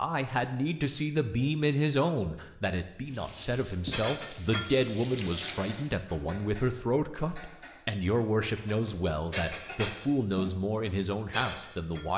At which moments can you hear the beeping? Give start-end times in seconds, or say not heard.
not heard.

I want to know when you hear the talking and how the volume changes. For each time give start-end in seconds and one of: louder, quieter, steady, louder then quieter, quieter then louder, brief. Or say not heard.
0.0-12.1 steady.